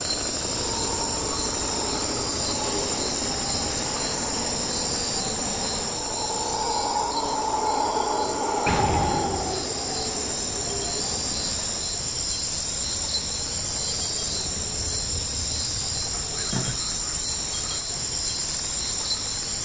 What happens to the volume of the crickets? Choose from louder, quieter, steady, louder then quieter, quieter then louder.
steady.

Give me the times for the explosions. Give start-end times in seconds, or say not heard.
8.7-9.7.